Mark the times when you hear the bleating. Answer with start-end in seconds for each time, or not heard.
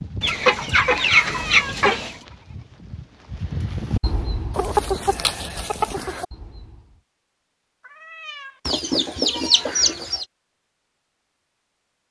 0.0-7.0.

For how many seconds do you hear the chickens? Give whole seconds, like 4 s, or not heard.
5 s.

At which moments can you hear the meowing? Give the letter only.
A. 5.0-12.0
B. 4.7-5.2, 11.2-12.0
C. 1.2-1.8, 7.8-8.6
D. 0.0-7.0
C.